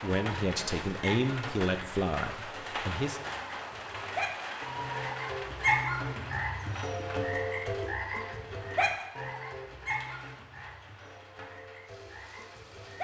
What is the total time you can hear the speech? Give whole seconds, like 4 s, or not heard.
3 s.